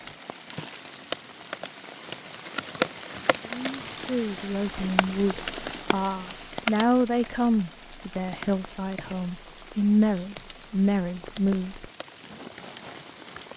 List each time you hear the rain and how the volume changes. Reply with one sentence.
You can hear the rain from 0.0 to 13.5 s, getting quieter.